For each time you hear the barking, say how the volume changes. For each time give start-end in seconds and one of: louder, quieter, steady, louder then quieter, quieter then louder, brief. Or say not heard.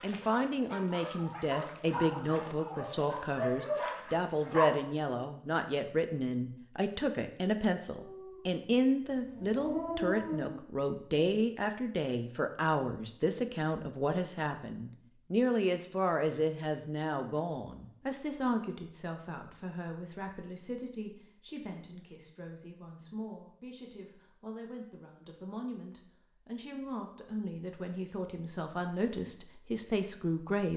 0.0-4.8 louder
7.9-10.6 brief.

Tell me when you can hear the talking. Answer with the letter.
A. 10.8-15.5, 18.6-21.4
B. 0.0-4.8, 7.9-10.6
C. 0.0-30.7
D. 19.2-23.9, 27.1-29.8
C.